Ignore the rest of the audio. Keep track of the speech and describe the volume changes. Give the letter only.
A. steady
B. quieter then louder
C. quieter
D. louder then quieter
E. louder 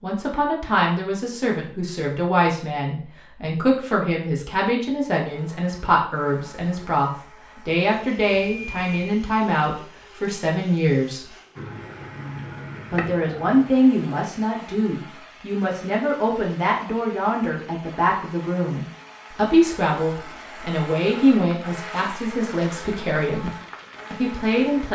A.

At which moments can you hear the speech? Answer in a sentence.
You can hear the speech from 0.0 to 11.3 s and from 12.9 to 24.9 s.